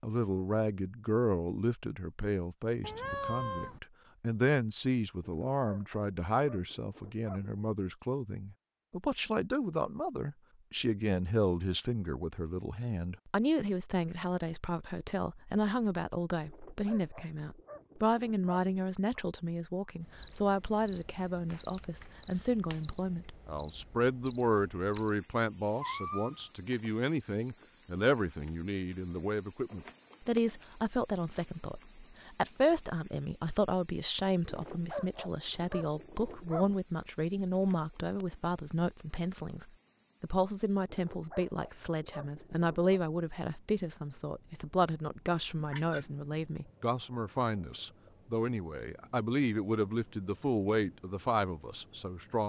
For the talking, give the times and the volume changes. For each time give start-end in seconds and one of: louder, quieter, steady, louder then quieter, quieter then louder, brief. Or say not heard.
0.0-52.4 steady.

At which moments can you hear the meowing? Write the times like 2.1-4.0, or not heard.
2.8-3.8, 25.8-26.5, 45.5-46.2.